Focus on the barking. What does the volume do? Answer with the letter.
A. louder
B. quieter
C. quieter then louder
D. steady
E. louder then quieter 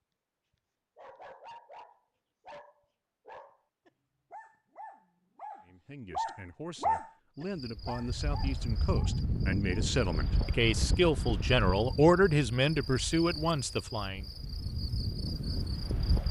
E.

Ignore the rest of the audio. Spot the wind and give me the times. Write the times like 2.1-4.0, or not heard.
7.8-16.2.